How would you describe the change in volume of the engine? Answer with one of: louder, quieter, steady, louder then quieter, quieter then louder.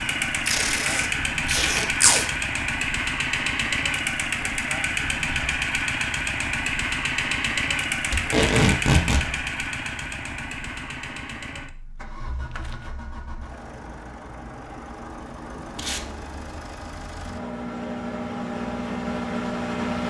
quieter then louder.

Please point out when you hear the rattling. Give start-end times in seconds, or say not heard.
12.2-12.9.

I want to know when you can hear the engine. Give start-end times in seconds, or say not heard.
0.0-20.0.